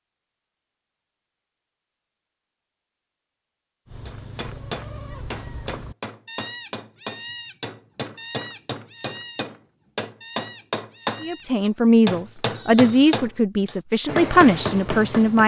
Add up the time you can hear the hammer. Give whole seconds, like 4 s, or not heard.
11 s.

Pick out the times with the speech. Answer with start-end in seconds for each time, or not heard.
11.2-15.4.